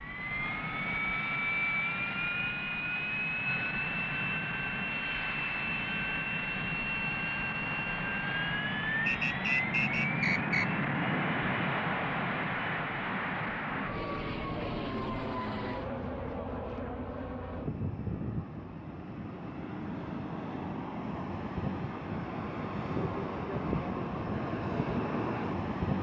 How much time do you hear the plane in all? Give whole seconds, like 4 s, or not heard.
26 s.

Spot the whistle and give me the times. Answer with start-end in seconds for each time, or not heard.
9.1-10.8.